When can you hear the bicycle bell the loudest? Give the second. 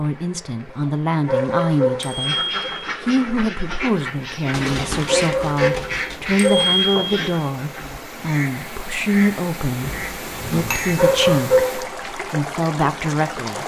7 s.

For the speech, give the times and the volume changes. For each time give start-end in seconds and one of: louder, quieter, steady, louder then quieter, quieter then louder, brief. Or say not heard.
0.0-2.4 brief
3.0-13.6 steady.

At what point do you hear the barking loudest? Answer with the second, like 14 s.
11 s.